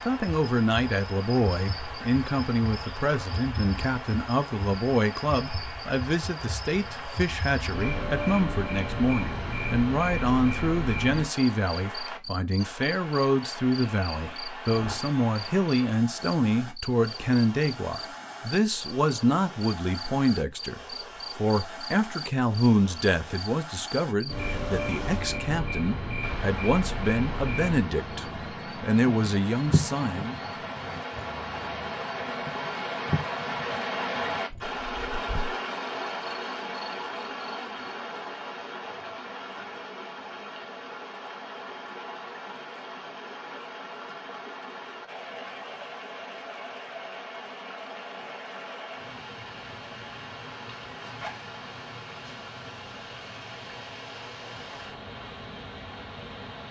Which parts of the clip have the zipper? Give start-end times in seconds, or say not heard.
51.0-51.5.